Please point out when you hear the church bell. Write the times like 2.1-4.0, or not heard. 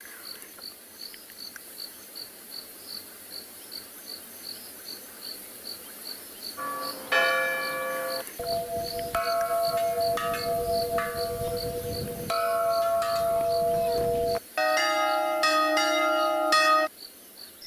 6.5-16.9.